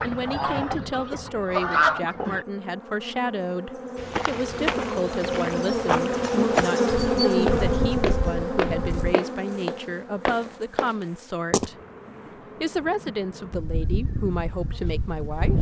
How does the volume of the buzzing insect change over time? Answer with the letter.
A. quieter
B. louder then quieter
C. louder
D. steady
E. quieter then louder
B.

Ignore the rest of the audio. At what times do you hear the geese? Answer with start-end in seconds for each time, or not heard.
0.0-2.4, 6.9-9.2, 13.5-15.5.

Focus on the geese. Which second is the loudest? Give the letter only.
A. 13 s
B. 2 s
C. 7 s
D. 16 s
B.